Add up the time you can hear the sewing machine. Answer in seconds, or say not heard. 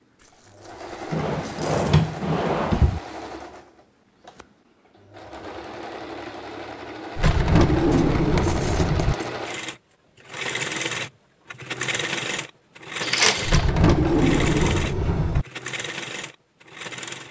17 s.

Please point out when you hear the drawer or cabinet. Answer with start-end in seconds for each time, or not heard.
1.1-3.0, 7.2-9.2, 13.4-15.4.